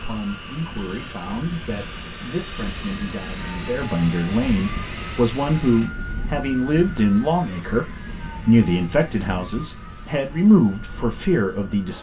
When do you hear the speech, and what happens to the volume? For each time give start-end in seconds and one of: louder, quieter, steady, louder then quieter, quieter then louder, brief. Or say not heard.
0.0-11.9 louder.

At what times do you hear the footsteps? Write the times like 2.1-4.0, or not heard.
not heard.